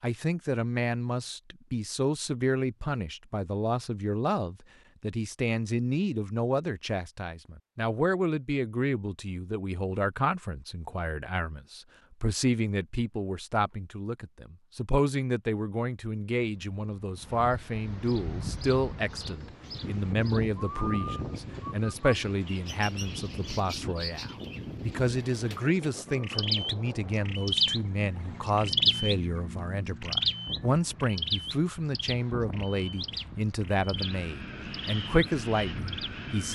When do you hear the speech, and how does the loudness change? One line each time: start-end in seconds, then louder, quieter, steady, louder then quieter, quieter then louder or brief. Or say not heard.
0.0-36.5 steady.